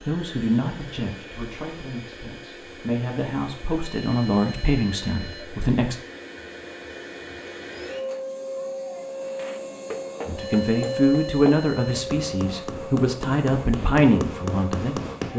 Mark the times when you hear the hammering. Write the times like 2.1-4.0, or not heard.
9.2-15.3.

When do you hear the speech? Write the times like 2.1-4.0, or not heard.
0.0-6.0, 10.2-15.3.